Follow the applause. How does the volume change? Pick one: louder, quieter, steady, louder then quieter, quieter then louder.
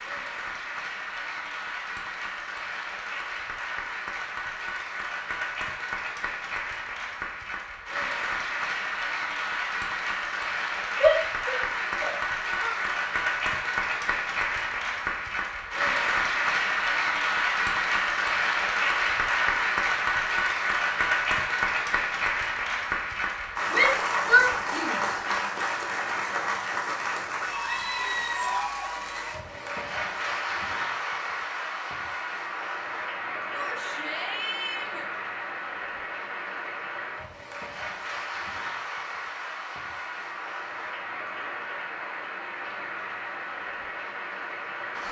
louder then quieter.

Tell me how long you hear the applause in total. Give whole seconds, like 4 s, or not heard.
45 s.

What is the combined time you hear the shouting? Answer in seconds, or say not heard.
5 s.